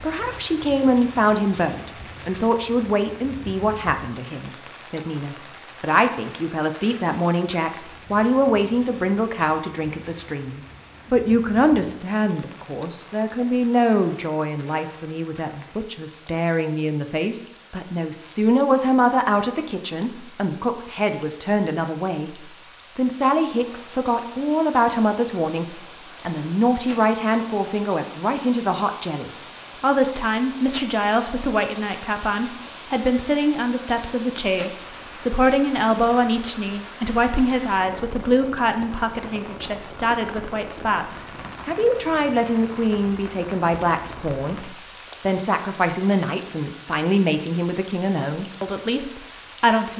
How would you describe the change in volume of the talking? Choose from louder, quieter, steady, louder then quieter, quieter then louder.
steady.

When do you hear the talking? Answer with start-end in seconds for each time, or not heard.
0.0-49.9.